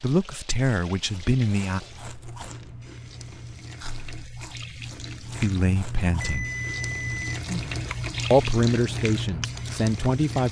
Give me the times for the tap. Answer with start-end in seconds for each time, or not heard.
0.0-10.4.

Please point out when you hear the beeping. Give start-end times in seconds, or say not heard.
6.0-7.4.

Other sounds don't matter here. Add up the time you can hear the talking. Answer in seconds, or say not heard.
5 s.